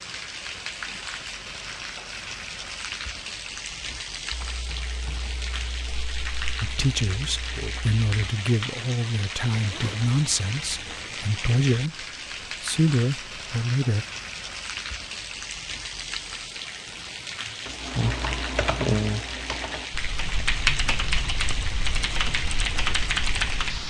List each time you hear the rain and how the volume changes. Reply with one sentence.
You can hear the rain from 0.0 to 23.8 s, at a steady volume.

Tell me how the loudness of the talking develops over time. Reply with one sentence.
The volume of the talking stays about the same.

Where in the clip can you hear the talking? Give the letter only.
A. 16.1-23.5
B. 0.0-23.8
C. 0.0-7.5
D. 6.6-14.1
D.